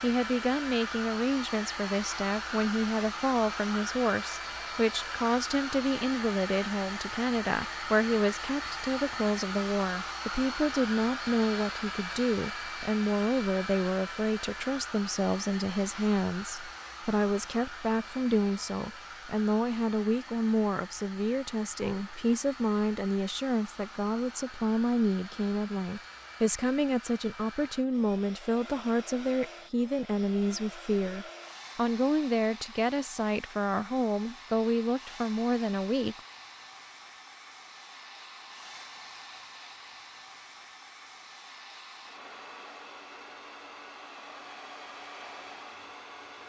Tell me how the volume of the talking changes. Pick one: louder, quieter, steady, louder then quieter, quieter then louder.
steady.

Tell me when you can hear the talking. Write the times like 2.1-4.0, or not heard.
0.0-36.2.